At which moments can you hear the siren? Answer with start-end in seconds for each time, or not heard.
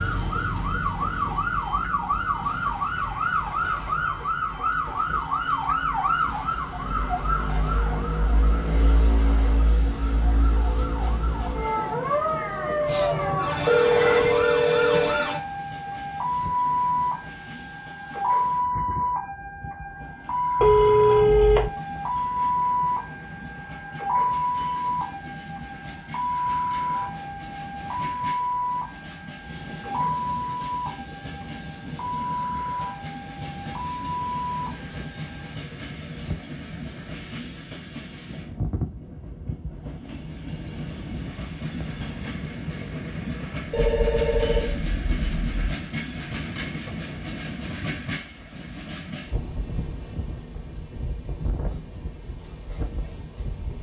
0.0-35.5.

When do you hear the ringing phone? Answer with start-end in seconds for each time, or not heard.
12.8-15.2, 20.6-21.7, 43.7-45.8.